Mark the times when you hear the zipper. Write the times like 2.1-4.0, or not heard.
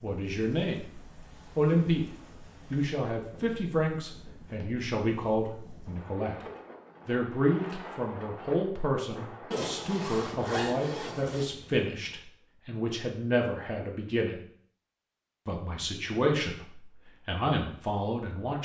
9.5-11.4.